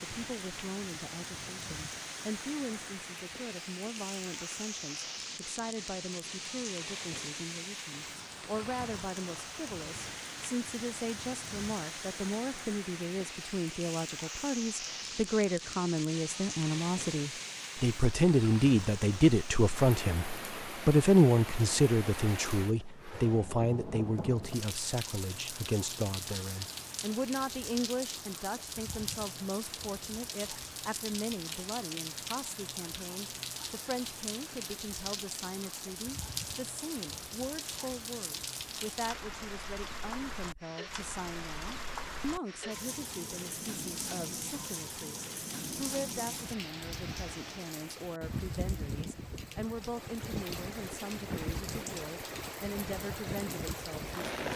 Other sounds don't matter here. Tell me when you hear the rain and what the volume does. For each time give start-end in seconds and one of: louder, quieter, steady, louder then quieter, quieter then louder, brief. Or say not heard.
0.0-54.5 steady.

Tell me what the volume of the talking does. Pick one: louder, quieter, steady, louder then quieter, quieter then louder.
louder then quieter.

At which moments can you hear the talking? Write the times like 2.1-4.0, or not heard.
0.0-54.3.